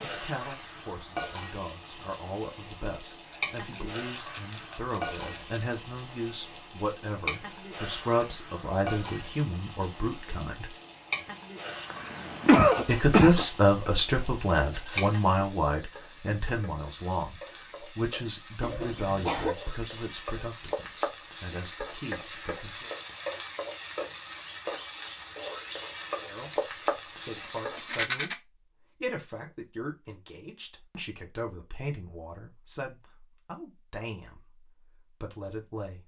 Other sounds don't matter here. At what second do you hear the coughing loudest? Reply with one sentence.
The loudest moment of the coughing is at 13 seconds.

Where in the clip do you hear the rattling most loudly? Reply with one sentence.
The volume of the rattling peaks at 28 seconds.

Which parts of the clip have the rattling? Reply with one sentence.
You can hear the rattling from 3.3 to 5.8 s, from 14.7 to 15.3 s and from 27.8 to 28.4 s.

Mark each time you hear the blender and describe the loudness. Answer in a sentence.
You can't hear the blender here.